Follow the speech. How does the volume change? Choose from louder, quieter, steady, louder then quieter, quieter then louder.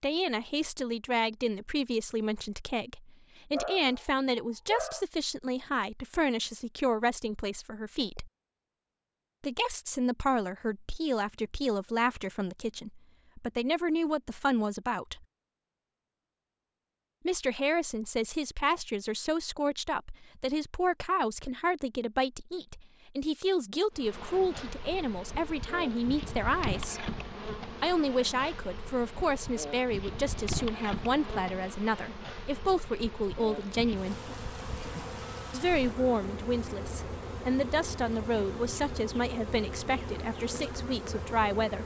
steady.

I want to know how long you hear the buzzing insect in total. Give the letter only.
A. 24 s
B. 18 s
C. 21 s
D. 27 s
B.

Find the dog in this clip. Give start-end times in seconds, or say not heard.
3.5-5.0.